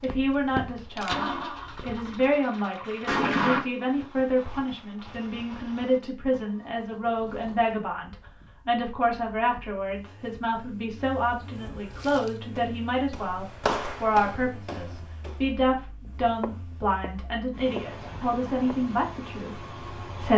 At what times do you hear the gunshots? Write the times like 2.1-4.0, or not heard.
1.6-3.6.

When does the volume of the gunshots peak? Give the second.
3 s.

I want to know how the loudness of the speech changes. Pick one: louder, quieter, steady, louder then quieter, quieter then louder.
steady.